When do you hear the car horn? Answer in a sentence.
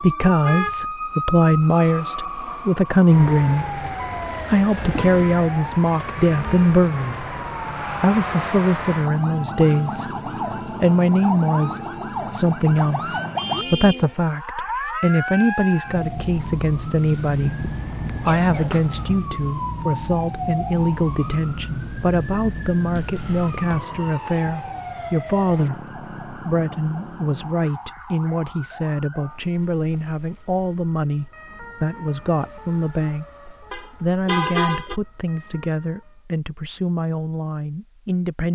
The car horn can be heard from 0.4 to 0.9 s, from 13.3 to 14.1 s and from 33.7 to 35.0 s.